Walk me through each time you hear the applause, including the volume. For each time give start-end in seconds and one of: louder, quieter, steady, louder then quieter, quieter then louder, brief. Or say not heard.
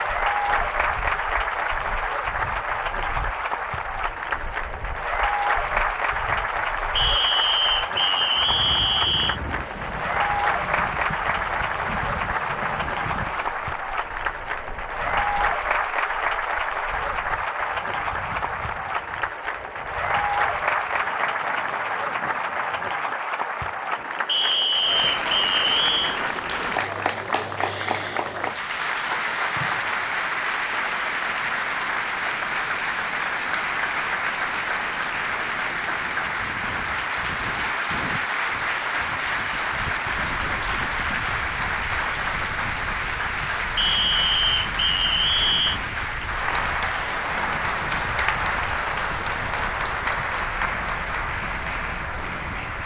0.0-52.8 steady.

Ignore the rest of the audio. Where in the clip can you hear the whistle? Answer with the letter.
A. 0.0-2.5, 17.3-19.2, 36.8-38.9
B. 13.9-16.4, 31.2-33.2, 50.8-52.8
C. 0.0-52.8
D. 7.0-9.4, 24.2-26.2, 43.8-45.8
D.